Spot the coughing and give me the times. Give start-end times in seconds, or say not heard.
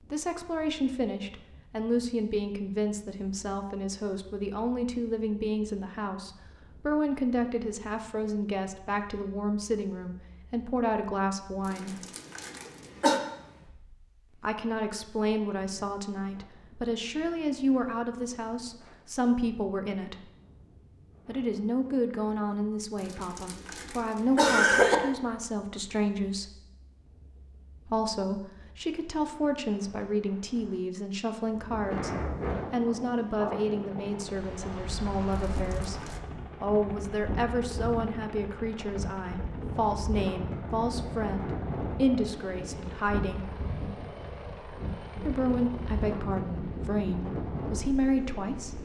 11.7-13.2, 23.1-24.9, 35.4-36.2.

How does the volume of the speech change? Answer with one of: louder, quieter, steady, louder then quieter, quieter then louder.
steady.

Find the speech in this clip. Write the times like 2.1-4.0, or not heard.
0.1-12.0, 14.3-20.2, 21.2-26.6, 27.9-43.5, 45.2-48.7.